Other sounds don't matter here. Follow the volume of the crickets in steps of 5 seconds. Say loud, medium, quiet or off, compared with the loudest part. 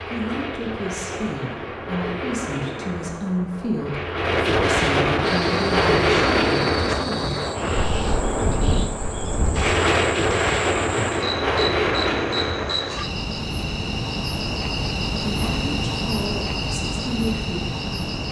off, medium, loud, loud.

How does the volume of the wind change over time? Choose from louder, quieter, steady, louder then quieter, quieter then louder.
louder.